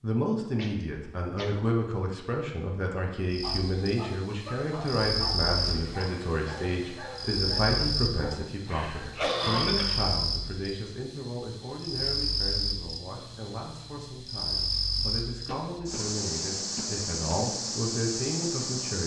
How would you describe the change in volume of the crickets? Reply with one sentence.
The loudness of the crickets stays about the same.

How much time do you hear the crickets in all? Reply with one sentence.
The crickets can be heard for 16 seconds in total.